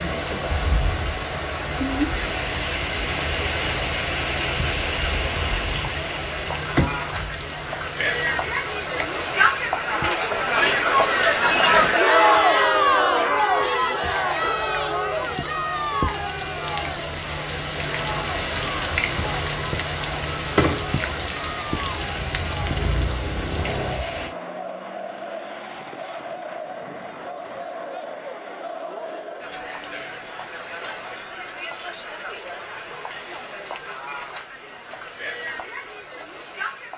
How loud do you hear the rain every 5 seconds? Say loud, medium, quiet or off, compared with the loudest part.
loud, loud, quiet, loud, loud, off, off, off.